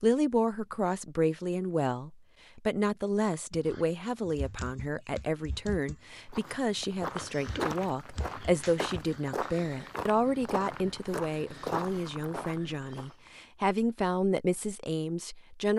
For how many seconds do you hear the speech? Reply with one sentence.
The speech can be heard for 16 seconds in total.